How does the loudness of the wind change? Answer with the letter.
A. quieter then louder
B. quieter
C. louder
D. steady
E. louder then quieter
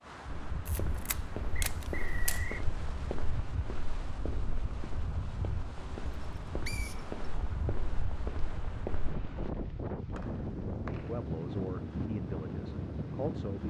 C.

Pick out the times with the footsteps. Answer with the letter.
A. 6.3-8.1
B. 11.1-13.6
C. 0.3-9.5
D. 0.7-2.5
C.